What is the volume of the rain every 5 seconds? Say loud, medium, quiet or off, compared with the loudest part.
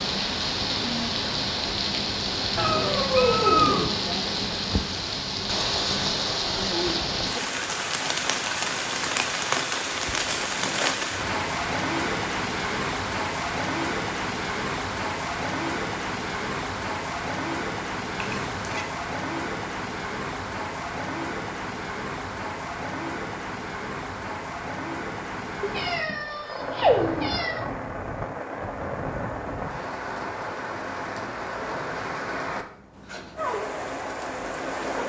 loud, loud, loud, loud, medium, medium, medium.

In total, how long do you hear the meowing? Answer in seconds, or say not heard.
4 s.